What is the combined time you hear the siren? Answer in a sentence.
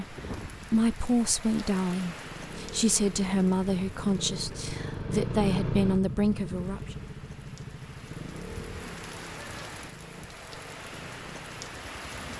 The siren can't be heard in this clip.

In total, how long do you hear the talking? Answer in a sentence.
The talking can be heard for 7 seconds in total.